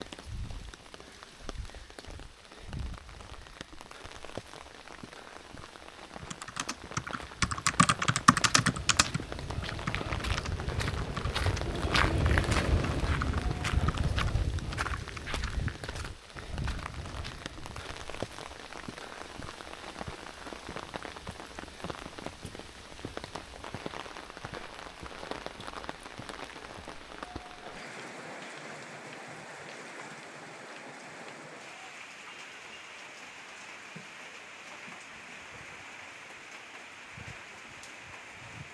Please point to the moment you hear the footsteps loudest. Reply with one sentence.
The volume of the footsteps peaks at 12 seconds.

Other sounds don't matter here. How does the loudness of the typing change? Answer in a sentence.
The volume of the typing goes down.